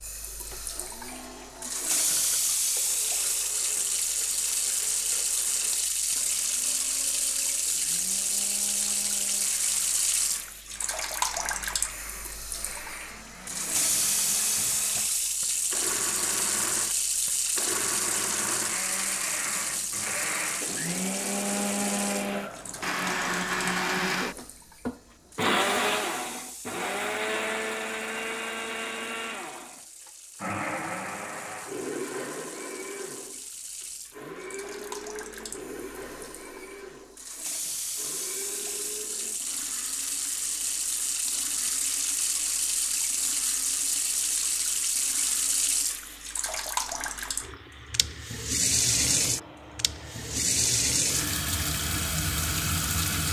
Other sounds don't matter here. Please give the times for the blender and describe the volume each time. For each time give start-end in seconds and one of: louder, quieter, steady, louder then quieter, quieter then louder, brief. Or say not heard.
0.0-53.2 louder then quieter.